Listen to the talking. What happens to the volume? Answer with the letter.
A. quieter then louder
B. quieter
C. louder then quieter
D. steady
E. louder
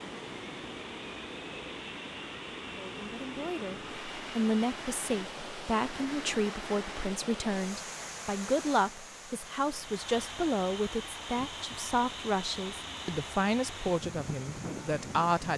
D.